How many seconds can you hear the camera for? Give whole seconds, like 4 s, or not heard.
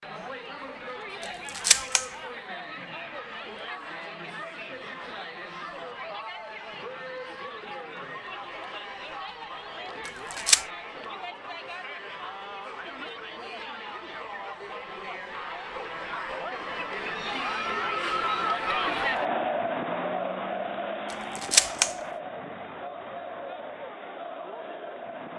2 s.